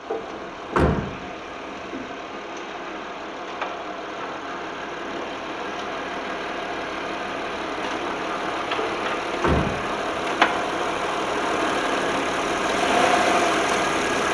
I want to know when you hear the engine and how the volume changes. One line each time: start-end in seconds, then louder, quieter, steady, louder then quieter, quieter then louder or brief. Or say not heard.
0.0-14.2 louder.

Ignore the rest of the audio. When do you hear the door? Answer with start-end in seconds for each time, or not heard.
0.1-2.0, 8.8-9.8.